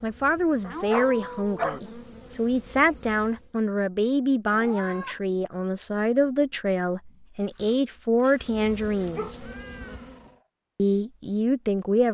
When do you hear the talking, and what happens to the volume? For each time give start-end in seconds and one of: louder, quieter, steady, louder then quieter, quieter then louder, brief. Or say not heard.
0.0-9.4 steady
10.8-12.1 brief.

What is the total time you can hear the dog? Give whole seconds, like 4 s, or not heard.
3 s.